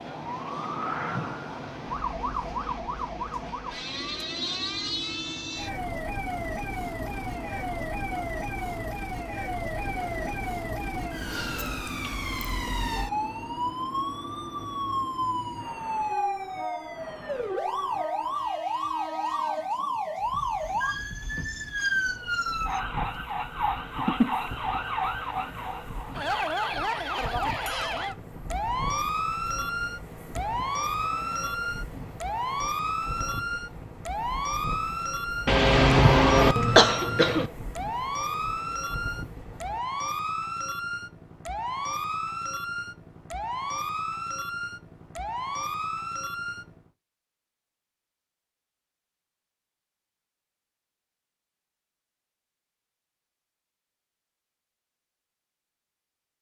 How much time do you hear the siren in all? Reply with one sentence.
You can hear the siren for 47 seconds altogether.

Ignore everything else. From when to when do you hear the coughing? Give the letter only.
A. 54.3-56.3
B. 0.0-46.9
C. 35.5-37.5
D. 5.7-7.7
C.